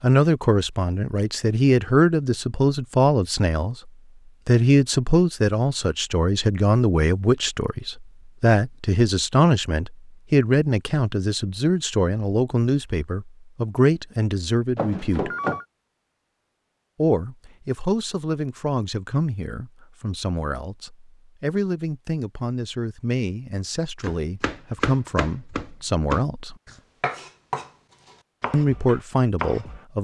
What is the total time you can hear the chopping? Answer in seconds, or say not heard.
6 s.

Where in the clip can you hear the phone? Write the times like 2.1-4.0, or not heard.
14.8-15.7.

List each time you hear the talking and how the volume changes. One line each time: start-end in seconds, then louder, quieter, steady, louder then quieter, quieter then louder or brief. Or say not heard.
0.0-15.3 steady
16.9-26.6 steady
28.5-30.0 brief.